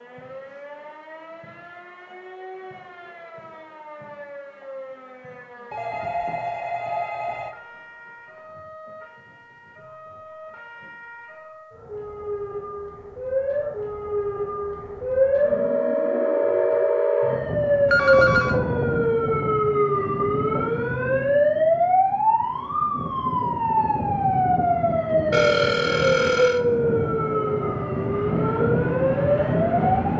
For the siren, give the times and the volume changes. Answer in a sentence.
The siren can be heard from 0.0 to 30.1 s, getting louder.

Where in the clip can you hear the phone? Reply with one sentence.
You can hear the phone from 5.7 to 7.5 s, from 17.9 to 18.6 s and from 25.3 to 26.6 s.